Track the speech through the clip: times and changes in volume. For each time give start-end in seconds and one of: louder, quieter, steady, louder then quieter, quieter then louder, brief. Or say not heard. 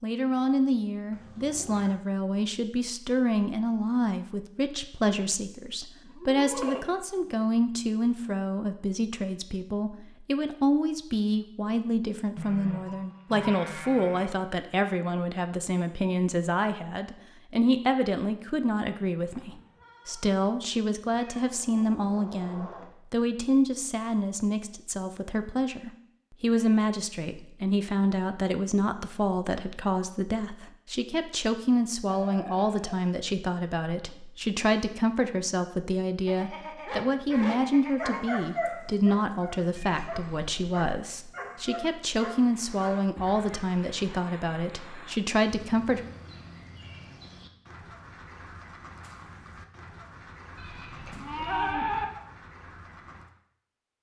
0.0-46.0 steady.